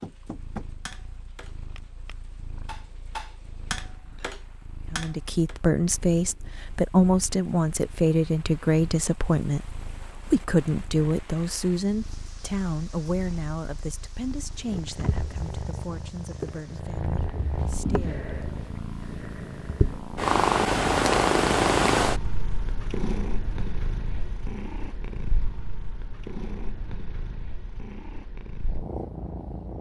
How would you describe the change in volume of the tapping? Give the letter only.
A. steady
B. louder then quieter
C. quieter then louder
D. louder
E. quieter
C.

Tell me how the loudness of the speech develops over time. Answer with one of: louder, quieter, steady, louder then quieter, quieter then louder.
quieter.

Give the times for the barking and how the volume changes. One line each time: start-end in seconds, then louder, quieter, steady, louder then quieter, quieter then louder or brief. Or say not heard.
not heard.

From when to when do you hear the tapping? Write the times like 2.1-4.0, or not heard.
0.0-5.5.